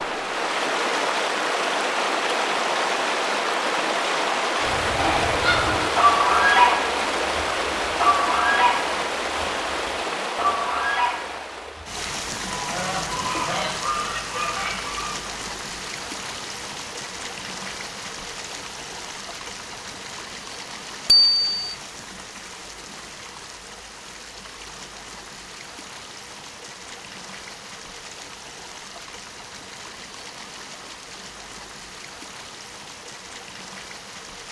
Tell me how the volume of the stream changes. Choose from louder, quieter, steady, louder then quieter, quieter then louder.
quieter.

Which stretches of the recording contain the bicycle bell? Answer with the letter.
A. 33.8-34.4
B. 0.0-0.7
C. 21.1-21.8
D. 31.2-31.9
C.